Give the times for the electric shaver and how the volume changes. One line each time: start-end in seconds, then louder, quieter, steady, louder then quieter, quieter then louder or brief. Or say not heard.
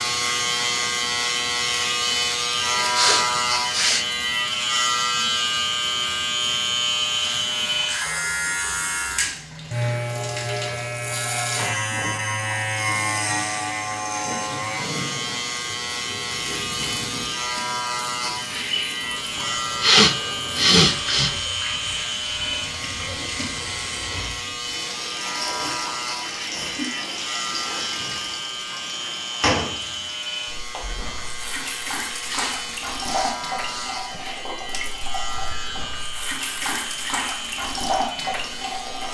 0.0-39.0 quieter.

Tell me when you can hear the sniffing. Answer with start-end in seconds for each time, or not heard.
2.8-4.0, 19.4-21.4, 32.2-34.2.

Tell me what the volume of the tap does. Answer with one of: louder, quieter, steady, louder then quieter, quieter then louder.
louder.